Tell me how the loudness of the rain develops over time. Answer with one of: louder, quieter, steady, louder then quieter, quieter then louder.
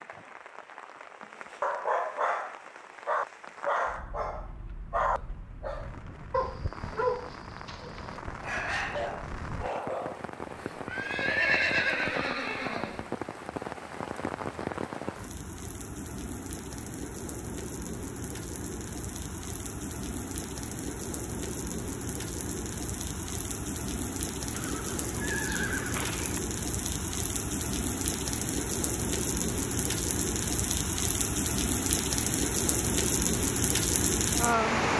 louder.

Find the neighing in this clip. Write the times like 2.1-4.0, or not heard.
10.4-13.1, 24.5-26.4.